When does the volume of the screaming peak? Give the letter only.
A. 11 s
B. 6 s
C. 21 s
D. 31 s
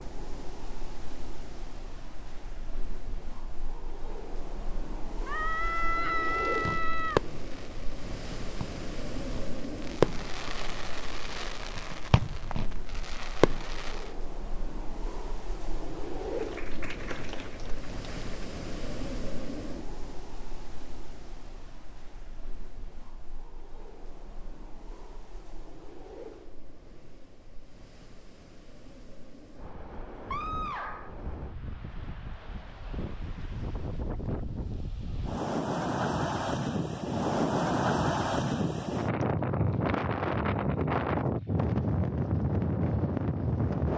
B.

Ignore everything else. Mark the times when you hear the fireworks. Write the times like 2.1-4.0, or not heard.
6.5-14.0.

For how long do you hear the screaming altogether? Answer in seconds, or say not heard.
3 s.